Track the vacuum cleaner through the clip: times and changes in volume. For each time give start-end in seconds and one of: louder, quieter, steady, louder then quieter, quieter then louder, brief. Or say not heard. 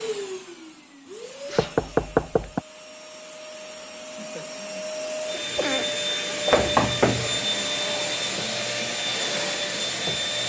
0.0-10.4 louder.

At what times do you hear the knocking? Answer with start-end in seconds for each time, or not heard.
1.6-2.6, 6.5-7.4.